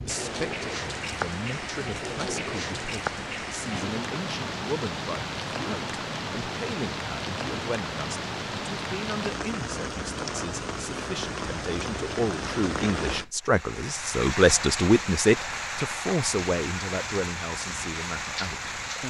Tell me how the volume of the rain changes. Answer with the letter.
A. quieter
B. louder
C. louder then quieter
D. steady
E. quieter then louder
D.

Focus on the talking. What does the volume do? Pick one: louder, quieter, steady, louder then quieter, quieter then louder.
louder then quieter.